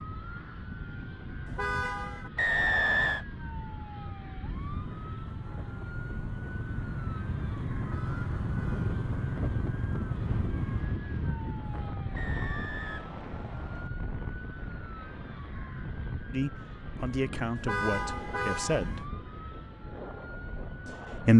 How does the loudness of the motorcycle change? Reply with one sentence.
The loudness of the motorcycle goes up.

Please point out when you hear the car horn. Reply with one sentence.
You can hear the car horn from 1.4 to 2.3 s, from 7.8 to 8.9 s and from 17.6 to 19.1 s.